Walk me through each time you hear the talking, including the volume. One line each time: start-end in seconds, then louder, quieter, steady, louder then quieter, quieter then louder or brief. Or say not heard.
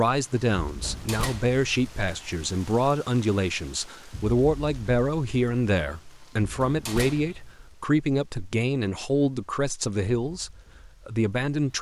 0.0-11.7 steady.